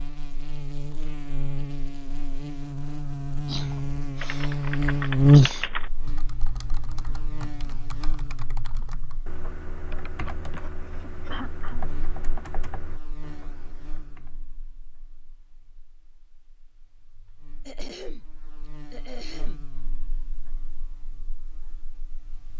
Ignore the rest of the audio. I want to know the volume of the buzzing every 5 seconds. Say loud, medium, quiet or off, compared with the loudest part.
medium, loud, quiet, quiet, quiet.